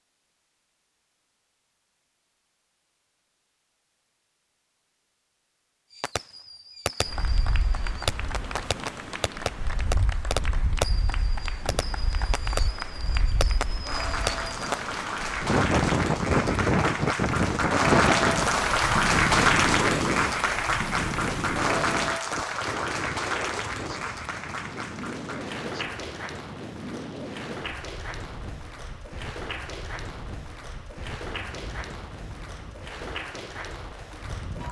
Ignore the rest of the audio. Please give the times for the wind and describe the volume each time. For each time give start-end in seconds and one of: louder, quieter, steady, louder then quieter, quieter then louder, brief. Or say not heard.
7.0-34.6 louder then quieter.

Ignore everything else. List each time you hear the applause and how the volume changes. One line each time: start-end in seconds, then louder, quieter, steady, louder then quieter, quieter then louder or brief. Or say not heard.
6.9-34.6 louder then quieter.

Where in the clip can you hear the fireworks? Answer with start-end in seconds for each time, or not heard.
5.9-14.8.